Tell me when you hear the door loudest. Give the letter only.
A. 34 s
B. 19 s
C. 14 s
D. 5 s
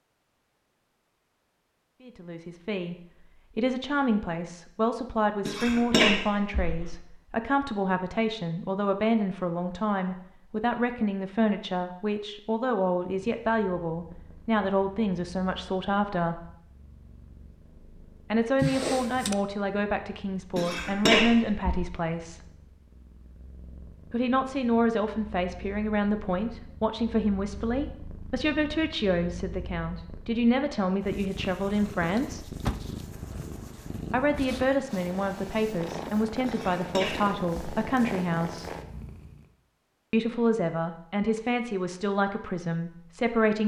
B.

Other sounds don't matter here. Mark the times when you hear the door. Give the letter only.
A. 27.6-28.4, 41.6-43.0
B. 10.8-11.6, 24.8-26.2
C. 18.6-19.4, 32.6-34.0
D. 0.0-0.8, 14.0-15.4
C.